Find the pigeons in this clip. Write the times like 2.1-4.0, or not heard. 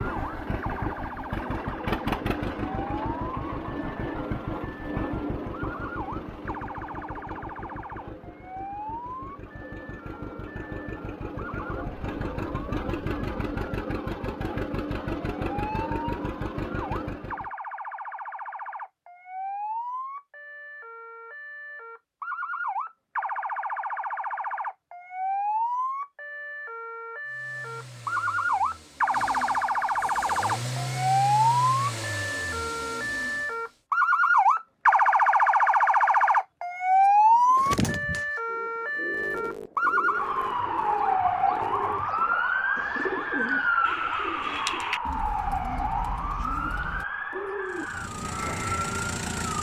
37.5-47.9.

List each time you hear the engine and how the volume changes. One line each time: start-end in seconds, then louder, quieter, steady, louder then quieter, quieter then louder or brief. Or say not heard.
0.0-17.5 quieter then louder
27.2-33.6 louder then quieter
47.6-49.5 brief.